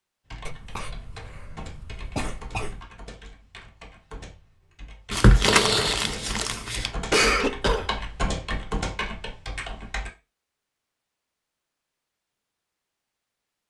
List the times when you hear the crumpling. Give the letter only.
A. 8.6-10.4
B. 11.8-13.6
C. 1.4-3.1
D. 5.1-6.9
D.